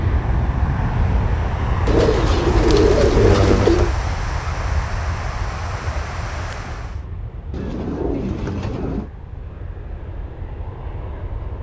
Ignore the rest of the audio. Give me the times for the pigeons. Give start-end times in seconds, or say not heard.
1.9-3.9, 7.5-9.1.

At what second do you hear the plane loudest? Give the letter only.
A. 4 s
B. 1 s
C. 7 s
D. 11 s
B.